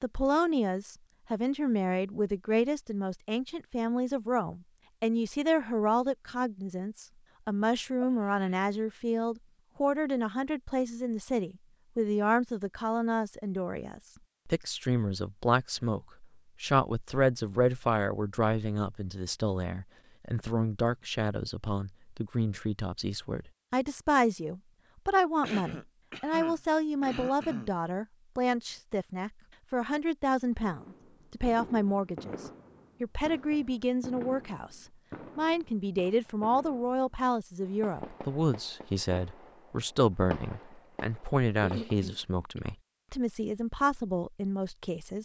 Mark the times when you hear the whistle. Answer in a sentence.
You can't hear the whistle here.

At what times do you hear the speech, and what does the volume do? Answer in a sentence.
You can hear the speech from 0.0 to 45.2 s, at a steady volume.